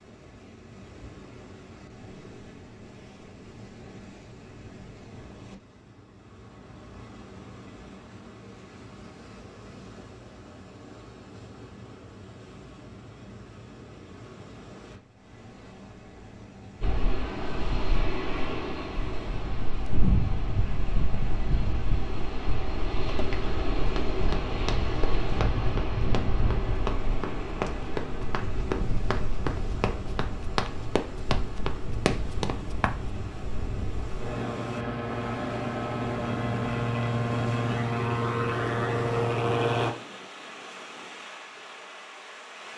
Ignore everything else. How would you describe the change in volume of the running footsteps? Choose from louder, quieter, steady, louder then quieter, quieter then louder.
louder.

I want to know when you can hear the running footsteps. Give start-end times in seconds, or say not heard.
23.0-33.0.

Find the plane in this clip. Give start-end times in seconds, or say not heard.
16.8-39.9.